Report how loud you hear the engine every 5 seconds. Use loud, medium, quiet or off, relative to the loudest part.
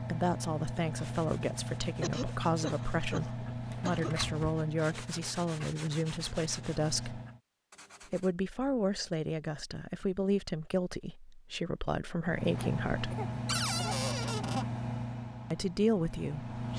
loud, medium, loud, medium.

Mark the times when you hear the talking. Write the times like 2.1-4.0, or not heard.
0.0-7.2, 8.1-13.2, 15.5-16.7.